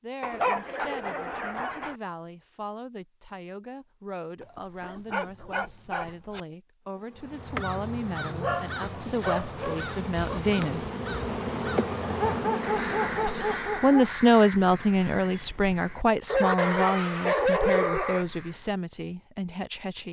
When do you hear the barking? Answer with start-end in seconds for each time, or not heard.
0.2-1.9, 4.4-6.4, 8.4-10.4, 12.2-14.1, 16.2-18.2.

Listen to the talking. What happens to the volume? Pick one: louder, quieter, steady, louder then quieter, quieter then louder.
louder then quieter.